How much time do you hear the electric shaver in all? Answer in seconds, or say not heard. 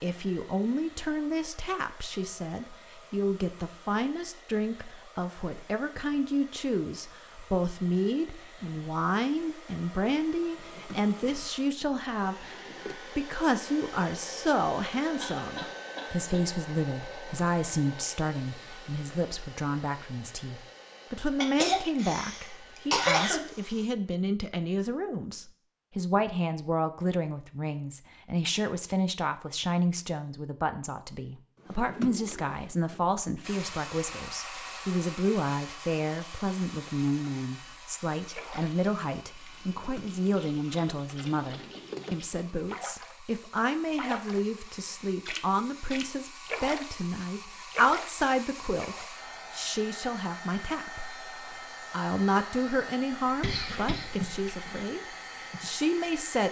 not heard.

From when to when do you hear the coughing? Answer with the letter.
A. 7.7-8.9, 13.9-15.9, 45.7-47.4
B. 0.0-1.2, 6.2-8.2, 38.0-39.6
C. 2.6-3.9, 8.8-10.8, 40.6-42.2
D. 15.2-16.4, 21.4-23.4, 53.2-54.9
D.